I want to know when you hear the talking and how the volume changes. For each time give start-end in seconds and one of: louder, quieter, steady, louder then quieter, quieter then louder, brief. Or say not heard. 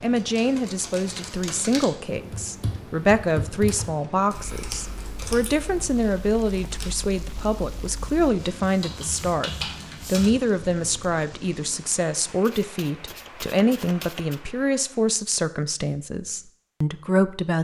0.0-17.6 steady.